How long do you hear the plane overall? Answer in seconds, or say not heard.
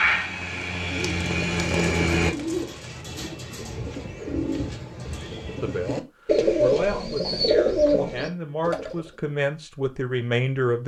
2 s.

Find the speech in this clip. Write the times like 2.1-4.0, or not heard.
5.6-10.8.